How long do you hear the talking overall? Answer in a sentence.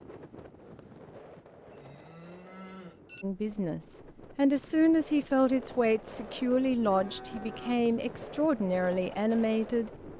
You can hear the talking for 7 seconds altogether.